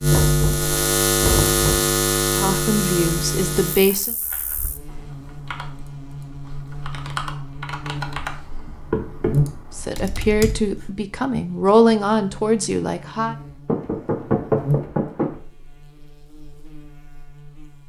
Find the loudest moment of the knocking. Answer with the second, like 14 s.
14 s.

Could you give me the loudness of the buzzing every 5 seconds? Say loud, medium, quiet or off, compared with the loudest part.
loud, medium, medium, quiet.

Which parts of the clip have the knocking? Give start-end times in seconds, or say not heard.
0.1-1.9, 8.9-9.6, 13.7-15.4.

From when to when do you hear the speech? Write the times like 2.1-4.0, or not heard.
2.4-4.2, 9.8-13.3.